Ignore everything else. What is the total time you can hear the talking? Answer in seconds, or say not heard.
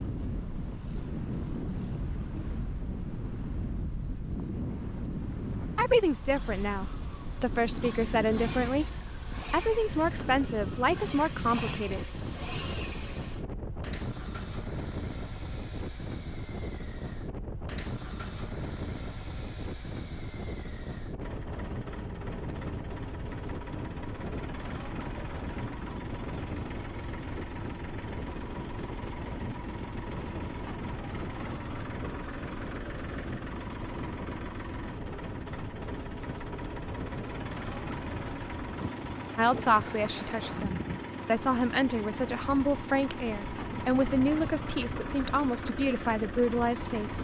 14 s.